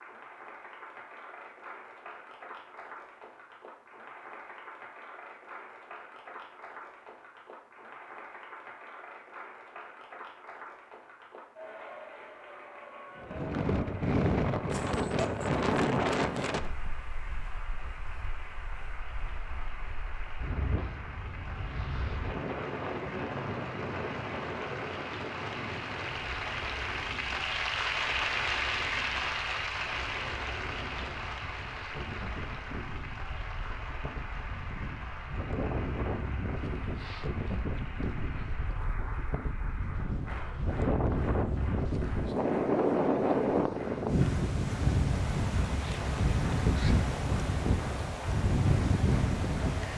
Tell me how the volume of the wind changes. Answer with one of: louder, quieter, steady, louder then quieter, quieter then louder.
quieter then louder.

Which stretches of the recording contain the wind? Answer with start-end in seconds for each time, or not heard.
13.2-49.9.